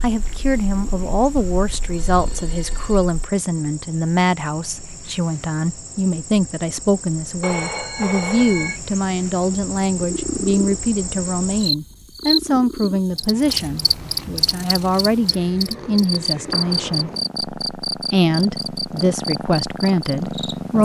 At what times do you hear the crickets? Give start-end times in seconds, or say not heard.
0.0-20.6.